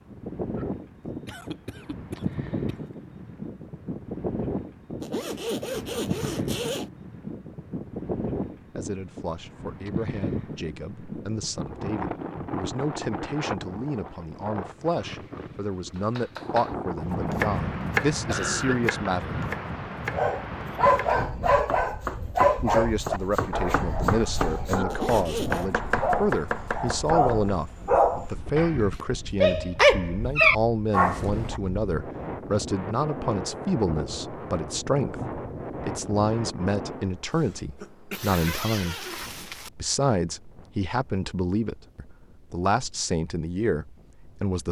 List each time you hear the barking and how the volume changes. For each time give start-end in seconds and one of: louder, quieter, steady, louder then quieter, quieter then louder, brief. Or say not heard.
20.1-31.6 quieter then louder.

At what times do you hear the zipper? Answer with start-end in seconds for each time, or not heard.
5.0-6.9, 24.9-25.7, 38.1-39.7.